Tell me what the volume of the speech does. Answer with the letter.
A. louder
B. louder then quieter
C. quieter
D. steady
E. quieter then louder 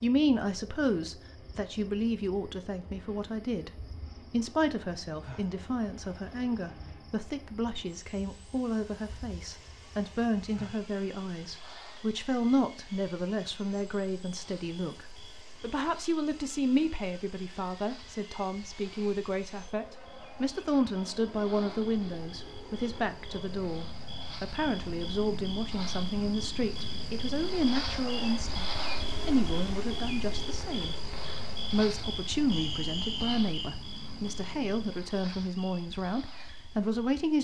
D.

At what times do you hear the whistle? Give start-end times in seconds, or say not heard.
32.5-33.8.